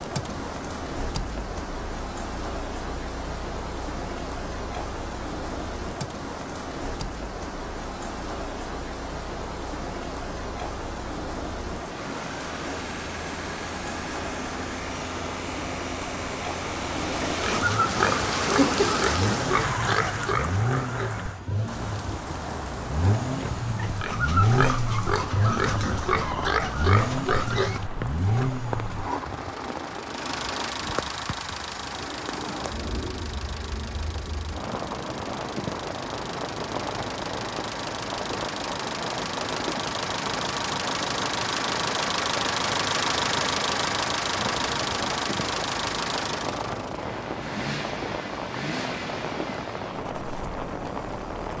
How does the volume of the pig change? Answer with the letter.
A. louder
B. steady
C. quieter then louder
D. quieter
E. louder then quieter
C.